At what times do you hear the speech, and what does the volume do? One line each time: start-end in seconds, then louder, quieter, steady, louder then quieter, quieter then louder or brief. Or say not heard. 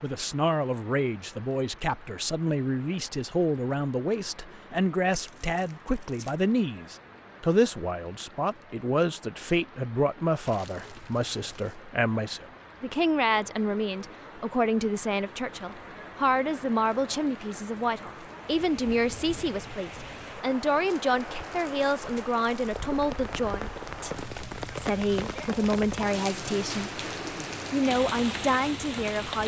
0.0-27.0 steady
27.7-29.4 brief.